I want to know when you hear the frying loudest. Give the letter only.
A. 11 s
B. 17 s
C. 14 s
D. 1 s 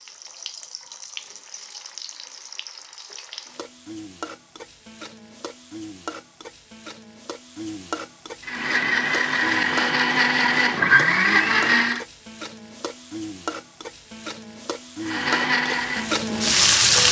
B.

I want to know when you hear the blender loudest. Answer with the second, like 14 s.
11 s.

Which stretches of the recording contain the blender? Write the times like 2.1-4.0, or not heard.
8.4-12.1, 15.0-17.0.